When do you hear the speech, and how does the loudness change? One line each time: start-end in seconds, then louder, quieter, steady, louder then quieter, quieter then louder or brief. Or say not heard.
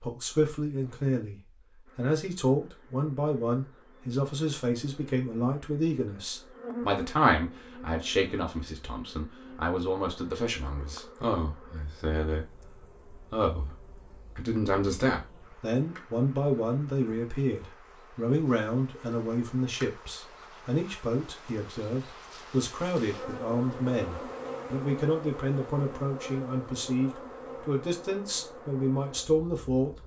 0.0-29.9 steady.